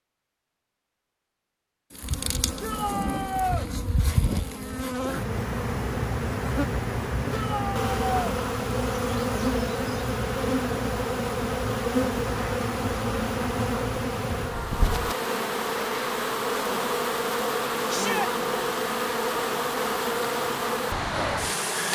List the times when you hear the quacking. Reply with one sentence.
The quacking can't be heard in this clip.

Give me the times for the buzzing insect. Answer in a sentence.
You can hear the buzzing insect from 1.9 to 21.9 s.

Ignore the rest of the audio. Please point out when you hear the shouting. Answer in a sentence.
The shouting can be heard from 2.6 to 3.6 s, from 7.3 to 8.3 s and from 17.9 to 18.3 s.